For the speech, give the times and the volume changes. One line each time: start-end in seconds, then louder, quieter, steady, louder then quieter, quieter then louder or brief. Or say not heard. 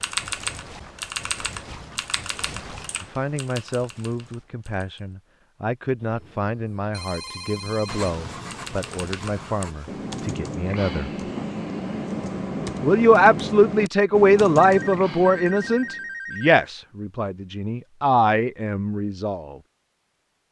3.0-11.1 steady
12.8-19.6 quieter then louder.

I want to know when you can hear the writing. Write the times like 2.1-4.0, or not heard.
7.8-10.2.